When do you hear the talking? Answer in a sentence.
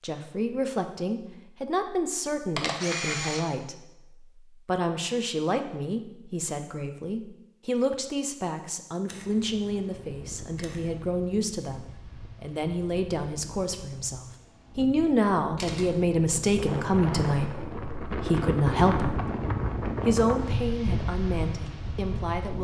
The talking can be heard from 0.0 to 22.5 s.